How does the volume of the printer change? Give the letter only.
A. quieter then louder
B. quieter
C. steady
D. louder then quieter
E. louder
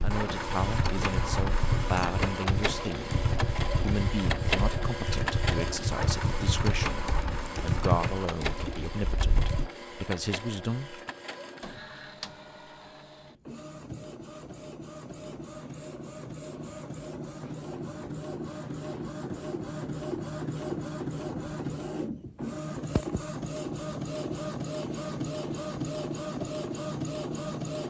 A.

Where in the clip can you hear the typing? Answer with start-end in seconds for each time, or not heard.
0.0-9.7.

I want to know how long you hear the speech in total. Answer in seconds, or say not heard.
11 s.